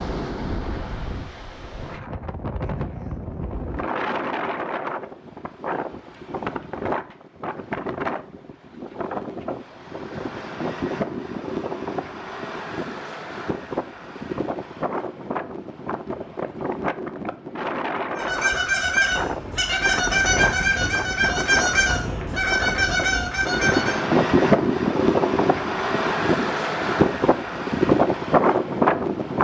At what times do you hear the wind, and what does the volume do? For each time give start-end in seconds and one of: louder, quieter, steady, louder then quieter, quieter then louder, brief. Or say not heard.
0.0-29.3 louder.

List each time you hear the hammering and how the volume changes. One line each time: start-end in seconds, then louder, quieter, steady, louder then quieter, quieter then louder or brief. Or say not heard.
not heard.